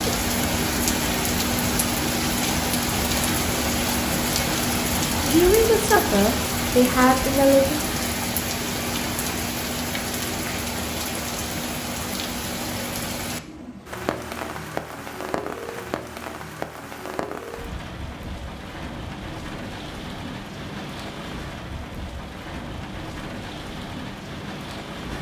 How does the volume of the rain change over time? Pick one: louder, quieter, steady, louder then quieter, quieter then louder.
quieter.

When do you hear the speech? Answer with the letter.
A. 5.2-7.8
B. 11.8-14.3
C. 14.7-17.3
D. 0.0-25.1
A.